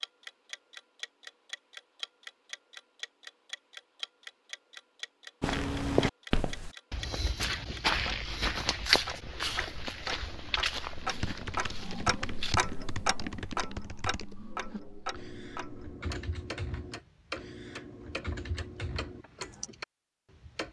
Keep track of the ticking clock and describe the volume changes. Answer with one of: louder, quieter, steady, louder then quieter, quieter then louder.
louder then quieter.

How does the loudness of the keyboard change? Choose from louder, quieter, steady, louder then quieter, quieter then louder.
steady.